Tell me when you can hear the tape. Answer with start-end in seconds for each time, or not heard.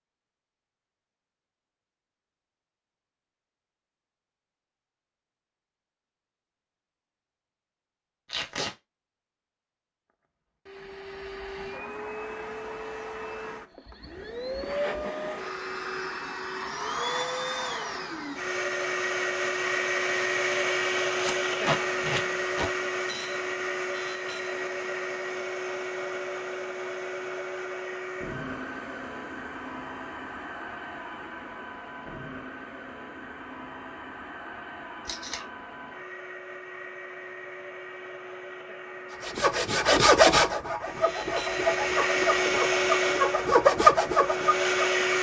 8.2-8.8, 21.2-22.7, 35.0-35.5.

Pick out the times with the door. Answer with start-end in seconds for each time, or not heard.
not heard.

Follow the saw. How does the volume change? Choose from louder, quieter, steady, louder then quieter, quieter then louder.
quieter then louder.